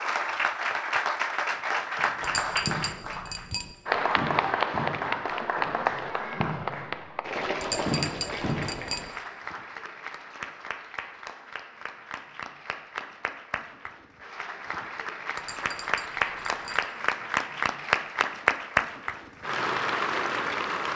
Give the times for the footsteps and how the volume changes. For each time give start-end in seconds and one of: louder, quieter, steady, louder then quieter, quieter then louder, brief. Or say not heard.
not heard.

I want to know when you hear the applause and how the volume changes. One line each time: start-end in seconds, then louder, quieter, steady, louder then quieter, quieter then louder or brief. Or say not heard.
0.0-20.9 quieter then louder.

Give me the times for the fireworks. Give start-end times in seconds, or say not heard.
1.6-3.2, 4.2-7.0, 7.8-8.9.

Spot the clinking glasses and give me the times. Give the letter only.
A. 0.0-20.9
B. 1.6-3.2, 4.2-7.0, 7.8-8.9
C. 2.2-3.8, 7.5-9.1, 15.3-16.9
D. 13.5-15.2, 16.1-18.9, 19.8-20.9
C.